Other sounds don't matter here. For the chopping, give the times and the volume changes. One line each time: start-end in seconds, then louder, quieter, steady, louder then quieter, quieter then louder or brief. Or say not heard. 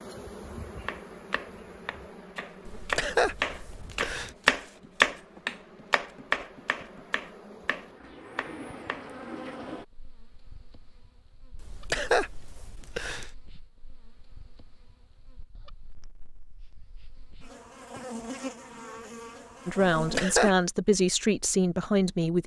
0.8-9.1 louder then quieter.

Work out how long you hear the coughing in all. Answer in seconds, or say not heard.
4 s.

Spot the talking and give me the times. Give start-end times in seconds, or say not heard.
19.6-22.4.